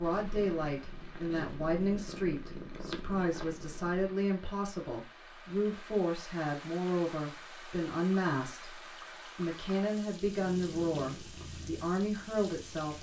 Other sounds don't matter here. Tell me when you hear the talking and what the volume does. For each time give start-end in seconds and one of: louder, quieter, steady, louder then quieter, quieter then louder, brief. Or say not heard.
0.0-12.9 steady.